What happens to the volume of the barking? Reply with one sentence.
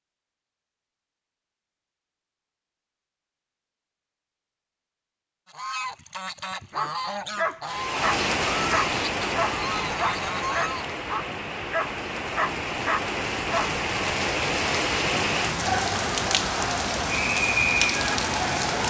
The volume of the barking stays about the same.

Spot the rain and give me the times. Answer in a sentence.
You can hear the rain from 7.7 to 18.8 s.